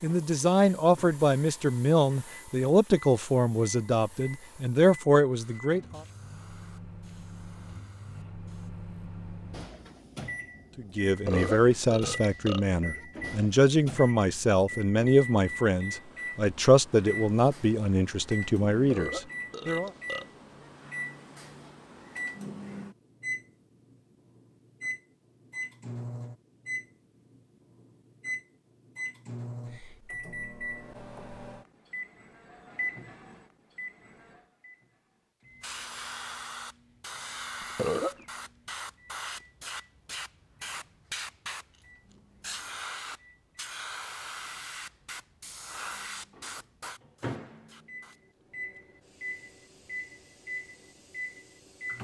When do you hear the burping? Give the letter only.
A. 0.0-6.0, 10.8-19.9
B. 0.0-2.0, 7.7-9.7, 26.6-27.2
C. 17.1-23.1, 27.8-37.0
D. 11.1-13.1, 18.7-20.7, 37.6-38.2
D.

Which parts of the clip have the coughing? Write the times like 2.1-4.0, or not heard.
not heard.